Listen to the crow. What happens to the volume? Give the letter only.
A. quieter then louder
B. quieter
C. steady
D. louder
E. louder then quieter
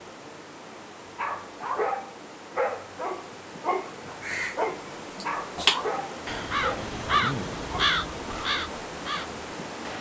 E.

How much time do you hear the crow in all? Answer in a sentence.
You can hear the crow for 5 seconds altogether.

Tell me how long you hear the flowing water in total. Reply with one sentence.
The flowing water can be heard for 10 seconds in total.